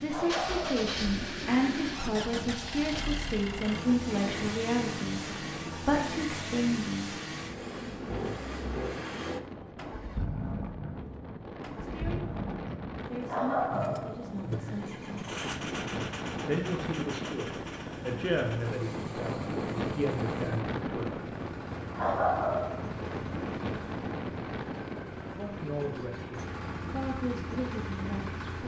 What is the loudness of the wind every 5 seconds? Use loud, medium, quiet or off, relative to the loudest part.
medium, medium, medium, loud, loud, medium.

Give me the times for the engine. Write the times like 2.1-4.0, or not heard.
0.0-28.6.